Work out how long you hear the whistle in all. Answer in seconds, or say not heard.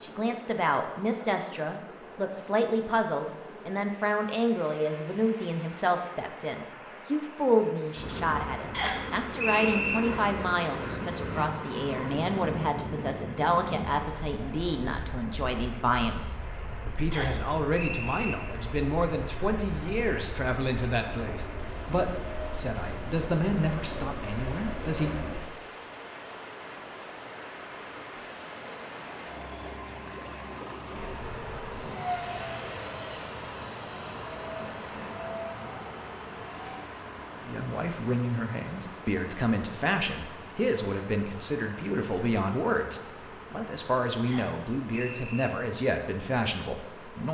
4 s.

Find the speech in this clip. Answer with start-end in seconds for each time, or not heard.
0.0-25.1, 37.5-47.2.